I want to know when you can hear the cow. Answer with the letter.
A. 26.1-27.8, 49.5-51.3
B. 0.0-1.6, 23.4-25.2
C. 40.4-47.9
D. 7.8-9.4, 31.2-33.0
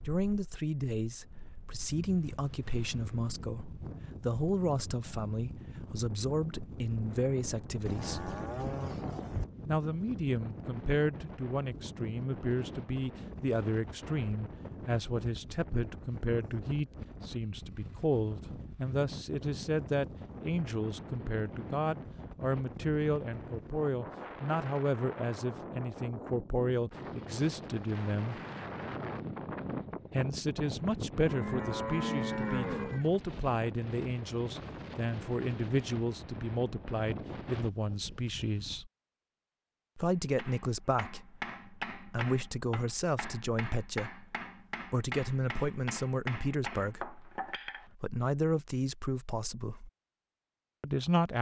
D.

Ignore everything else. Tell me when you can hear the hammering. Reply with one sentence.
The hammering can be heard from 40.4 to 47.9 s.